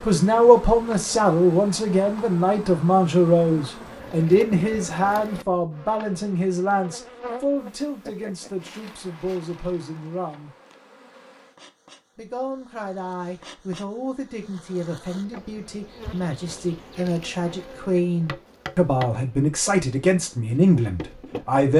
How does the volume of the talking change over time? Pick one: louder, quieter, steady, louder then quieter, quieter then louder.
quieter then louder.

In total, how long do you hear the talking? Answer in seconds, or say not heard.
20 s.